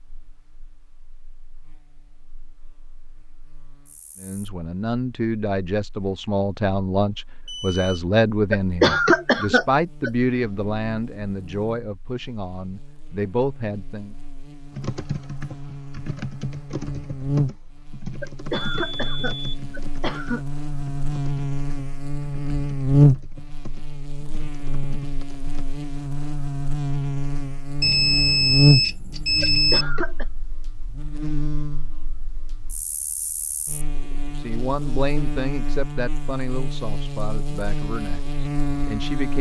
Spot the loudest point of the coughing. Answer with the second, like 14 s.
9 s.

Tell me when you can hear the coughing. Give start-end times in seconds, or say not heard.
8.5-10.1, 18.2-20.4, 29.4-30.2.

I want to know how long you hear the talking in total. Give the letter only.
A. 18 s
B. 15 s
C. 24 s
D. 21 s
B.